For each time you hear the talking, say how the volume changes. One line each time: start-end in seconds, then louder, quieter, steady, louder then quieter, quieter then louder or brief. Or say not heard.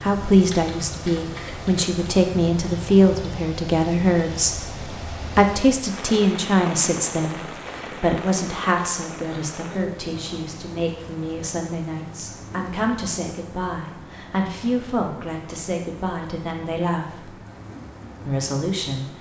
0.0-17.4 quieter
18.2-19.1 brief.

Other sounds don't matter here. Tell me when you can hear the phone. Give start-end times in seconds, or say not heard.
not heard.